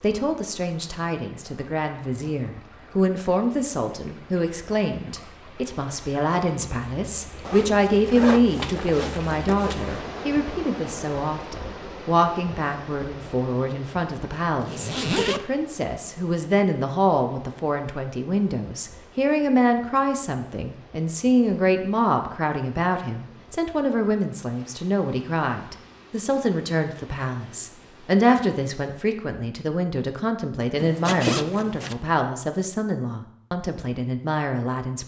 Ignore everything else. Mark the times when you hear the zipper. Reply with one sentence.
The zipper can be heard from 7.5 to 10.0 s, from 14.6 to 15.4 s and from 30.8 to 31.9 s.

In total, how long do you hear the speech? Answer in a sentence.
You can hear the speech for 35 seconds altogether.